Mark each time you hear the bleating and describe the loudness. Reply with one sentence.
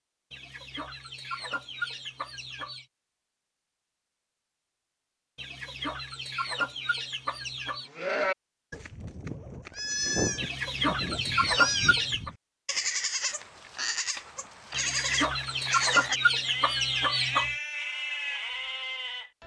The bleating can be heard from 7.8 to 19.4 s, at a steady volume.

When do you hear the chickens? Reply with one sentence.
You can hear the chickens from 0.3 to 2.9 s, from 5.3 to 7.9 s, from 10.3 to 12.3 s and from 14.7 to 17.6 s.